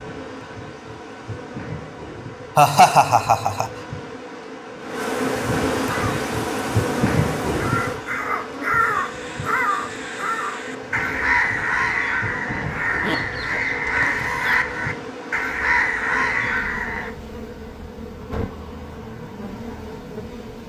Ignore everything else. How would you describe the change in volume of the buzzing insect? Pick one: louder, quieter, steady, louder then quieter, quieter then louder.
louder then quieter.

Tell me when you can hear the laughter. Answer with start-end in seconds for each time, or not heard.
2.5-3.7.